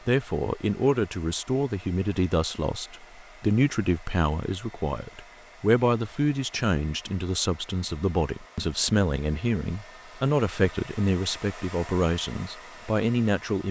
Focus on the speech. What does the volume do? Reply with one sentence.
The volume of the speech stays about the same.